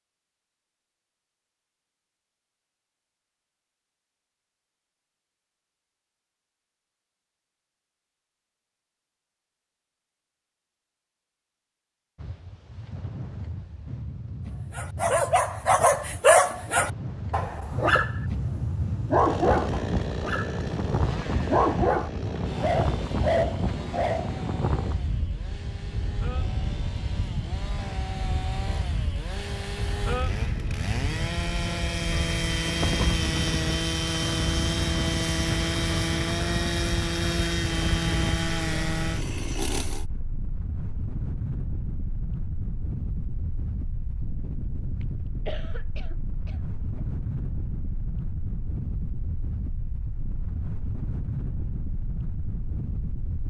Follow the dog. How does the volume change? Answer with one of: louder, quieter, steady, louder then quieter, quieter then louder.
quieter.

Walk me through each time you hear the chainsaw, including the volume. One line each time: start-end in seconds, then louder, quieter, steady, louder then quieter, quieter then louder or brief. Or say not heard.
19.1-40.0 quieter then louder.